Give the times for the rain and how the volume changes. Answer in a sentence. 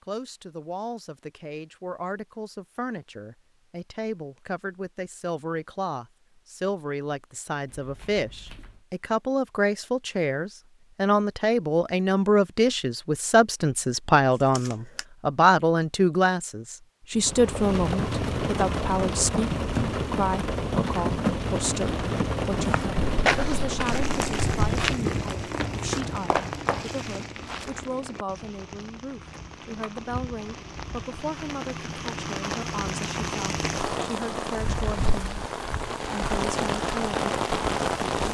You can hear the rain from 17.1 to 38.3 s, getting quieter then louder.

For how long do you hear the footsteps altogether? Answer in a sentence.
The footsteps can be heard for 5 seconds in total.